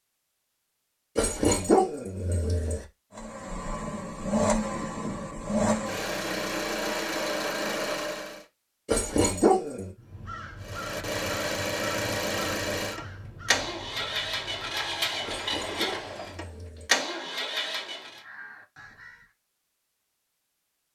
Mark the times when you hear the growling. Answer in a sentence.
The growling can be heard from 1.1 to 2.9 s, from 8.8 to 9.9 s and from 15.2 to 16.9 s.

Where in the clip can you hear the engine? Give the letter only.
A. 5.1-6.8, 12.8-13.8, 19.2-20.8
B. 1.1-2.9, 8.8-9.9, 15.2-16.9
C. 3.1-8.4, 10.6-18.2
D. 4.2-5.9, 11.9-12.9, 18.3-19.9
C.